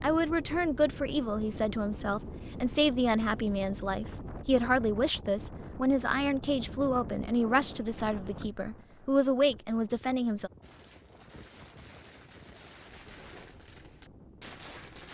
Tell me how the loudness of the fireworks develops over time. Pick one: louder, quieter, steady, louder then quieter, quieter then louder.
louder.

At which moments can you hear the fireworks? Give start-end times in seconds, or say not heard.
10.6-15.0.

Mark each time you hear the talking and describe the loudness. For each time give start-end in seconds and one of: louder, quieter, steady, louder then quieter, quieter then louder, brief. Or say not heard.
0.0-10.5 steady.